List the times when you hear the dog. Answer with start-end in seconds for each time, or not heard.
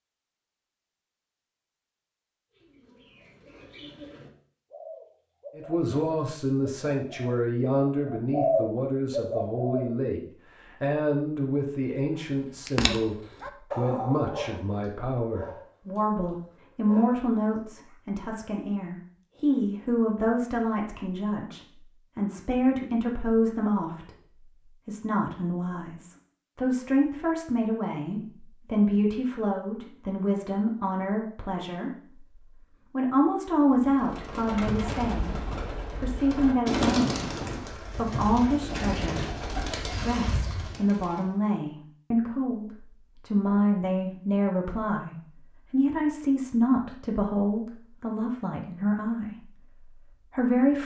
12.7-17.9.